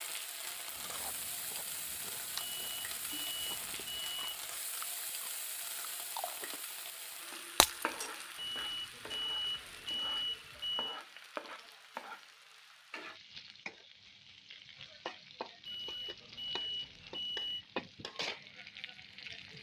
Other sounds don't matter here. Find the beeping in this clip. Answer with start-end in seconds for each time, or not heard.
2.4-4.5, 8.3-11.0, 15.7-17.6.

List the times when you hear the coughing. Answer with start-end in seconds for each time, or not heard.
not heard.